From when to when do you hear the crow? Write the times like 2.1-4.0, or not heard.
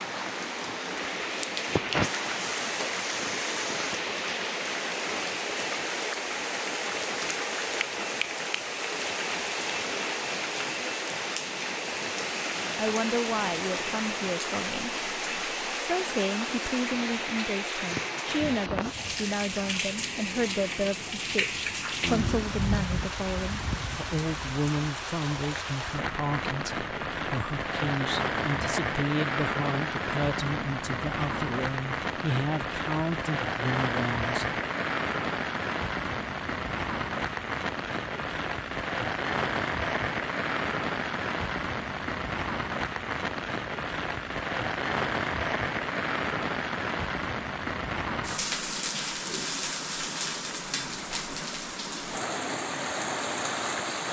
not heard.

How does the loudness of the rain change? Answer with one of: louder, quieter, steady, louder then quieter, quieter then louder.
steady.